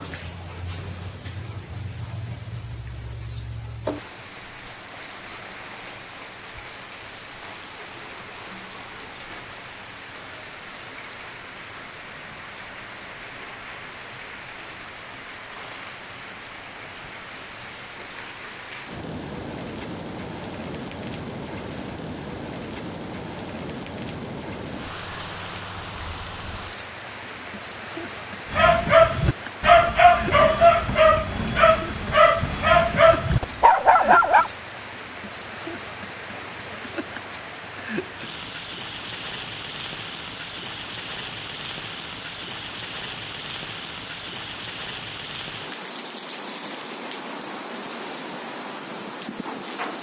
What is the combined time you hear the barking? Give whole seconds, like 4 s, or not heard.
6 s.